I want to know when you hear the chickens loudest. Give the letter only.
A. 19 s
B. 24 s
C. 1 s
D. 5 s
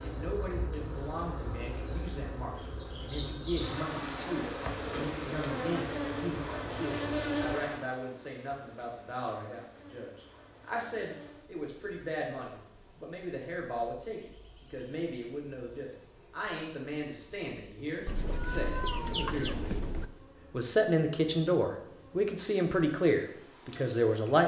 A.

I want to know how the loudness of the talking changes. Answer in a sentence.
The volume of the talking goes up.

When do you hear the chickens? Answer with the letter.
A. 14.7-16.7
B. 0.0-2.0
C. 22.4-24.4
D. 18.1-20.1
D.